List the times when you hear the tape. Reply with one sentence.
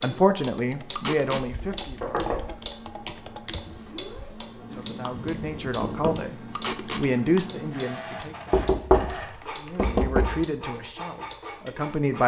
The tape can be heard from 0.9 to 1.4 s and from 6.5 to 7.0 s.